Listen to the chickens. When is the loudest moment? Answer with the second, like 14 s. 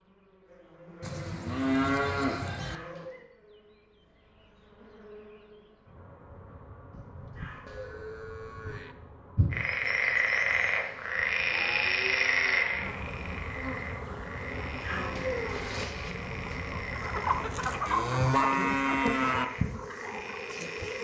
18 s.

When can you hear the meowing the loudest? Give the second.
15 s.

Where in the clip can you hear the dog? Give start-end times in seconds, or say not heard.
not heard.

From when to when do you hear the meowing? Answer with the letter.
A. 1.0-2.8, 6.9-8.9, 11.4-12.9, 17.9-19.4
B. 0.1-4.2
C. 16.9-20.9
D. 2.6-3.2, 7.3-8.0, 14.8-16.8
D.